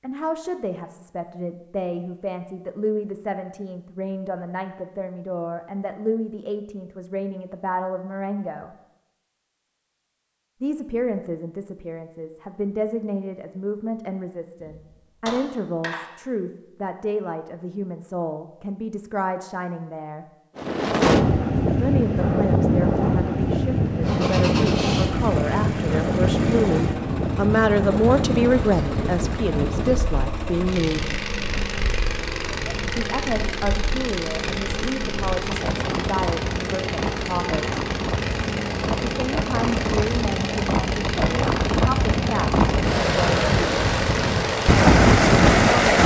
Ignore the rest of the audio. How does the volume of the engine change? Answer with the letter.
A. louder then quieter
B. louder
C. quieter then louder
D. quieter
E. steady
E.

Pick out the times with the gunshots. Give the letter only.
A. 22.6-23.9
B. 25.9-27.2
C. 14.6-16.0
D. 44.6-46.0
C.